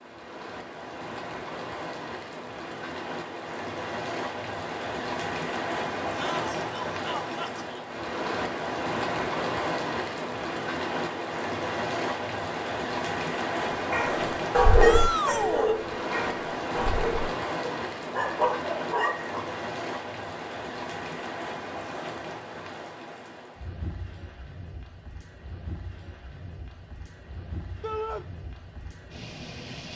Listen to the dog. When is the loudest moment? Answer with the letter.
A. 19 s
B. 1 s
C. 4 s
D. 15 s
D.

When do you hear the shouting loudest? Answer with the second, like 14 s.
15 s.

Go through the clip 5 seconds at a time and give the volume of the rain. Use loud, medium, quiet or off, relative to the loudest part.
medium, loud, loud, loud, medium, quiet.